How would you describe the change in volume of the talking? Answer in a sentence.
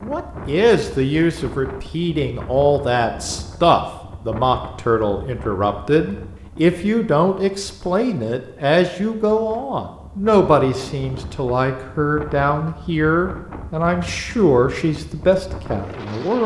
The volume of the talking stays about the same.